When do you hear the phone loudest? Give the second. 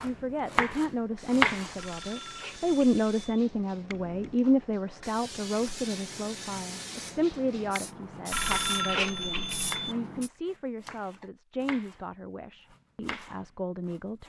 9 s.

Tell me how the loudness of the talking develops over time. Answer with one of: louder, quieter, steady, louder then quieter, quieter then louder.
quieter.